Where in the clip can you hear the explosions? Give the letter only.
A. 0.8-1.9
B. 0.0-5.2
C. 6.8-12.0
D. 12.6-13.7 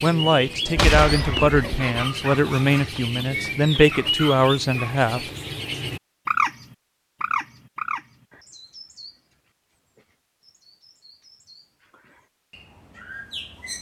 A.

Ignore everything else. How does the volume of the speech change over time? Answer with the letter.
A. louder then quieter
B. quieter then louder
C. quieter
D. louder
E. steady
E.